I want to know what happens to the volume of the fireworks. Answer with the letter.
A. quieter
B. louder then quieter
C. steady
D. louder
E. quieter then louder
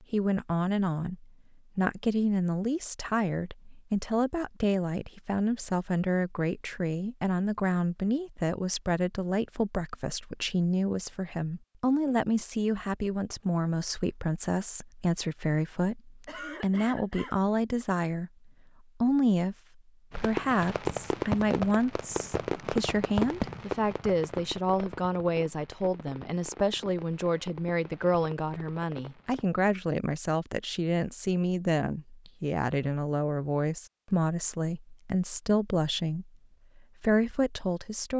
A.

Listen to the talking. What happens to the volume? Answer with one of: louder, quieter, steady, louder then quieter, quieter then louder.
steady.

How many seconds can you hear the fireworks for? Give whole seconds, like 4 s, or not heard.
9 s.